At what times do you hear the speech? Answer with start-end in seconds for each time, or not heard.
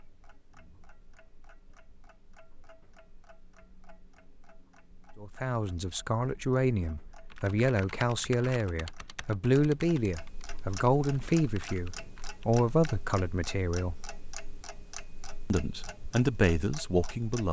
5.2-14.0, 15.5-17.4.